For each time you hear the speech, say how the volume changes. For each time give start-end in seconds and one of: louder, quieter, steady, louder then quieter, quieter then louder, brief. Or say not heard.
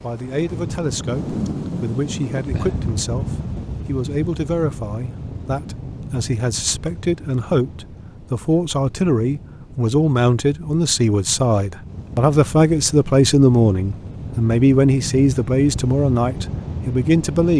0.0-17.5 louder.